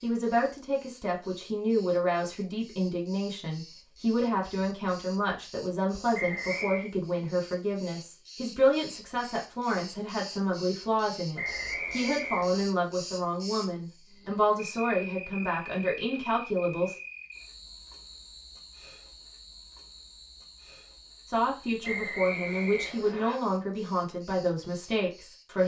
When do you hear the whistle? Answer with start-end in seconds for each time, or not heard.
6.1-6.9, 11.3-12.7, 21.8-23.4.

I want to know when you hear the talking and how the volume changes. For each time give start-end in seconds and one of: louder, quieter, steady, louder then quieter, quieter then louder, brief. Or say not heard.
0.0-16.9 steady
21.3-25.6 steady.